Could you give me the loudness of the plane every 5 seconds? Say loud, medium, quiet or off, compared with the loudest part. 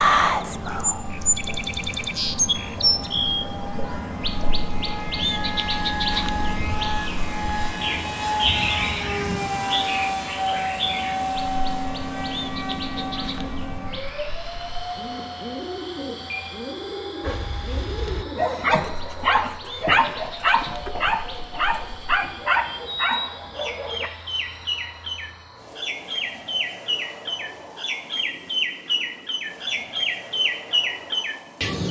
medium, loud, loud, medium, quiet, quiet, quiet.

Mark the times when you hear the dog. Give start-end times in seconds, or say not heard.
17.2-24.1.